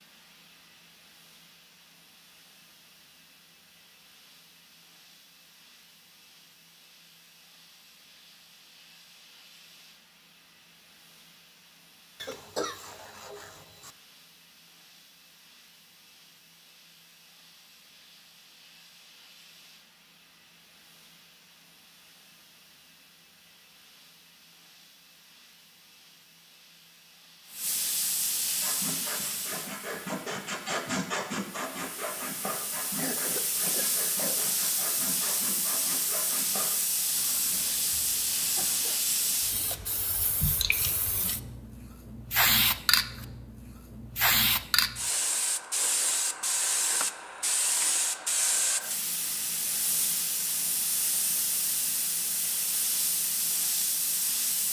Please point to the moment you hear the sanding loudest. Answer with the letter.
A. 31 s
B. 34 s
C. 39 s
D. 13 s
A.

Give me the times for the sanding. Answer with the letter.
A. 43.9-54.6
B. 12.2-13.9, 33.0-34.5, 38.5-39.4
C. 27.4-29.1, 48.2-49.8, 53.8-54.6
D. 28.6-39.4
D.